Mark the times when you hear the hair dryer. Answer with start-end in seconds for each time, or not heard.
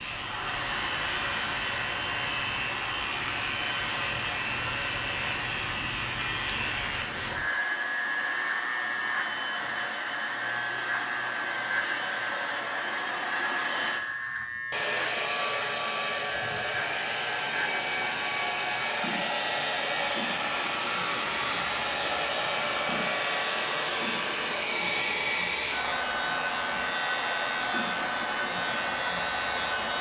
0.0-29.9.